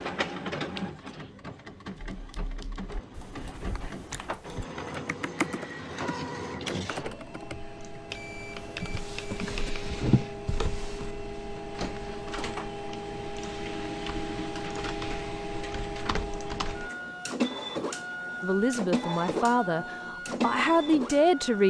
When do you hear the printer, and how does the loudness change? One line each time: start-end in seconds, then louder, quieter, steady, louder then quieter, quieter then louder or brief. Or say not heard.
0.0-21.6 louder.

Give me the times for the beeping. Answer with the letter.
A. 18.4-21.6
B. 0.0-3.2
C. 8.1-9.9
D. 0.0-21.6
C.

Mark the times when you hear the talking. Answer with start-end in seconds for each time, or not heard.
18.4-21.6.